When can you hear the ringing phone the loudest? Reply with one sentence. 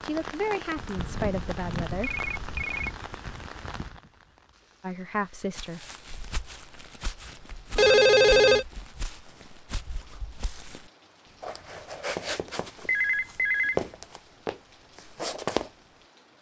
The volume of the ringing phone peaks at 8 seconds.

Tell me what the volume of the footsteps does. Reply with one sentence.
The volume of the footsteps goes up.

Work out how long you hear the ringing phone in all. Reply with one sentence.
You can hear the ringing phone for 4 seconds altogether.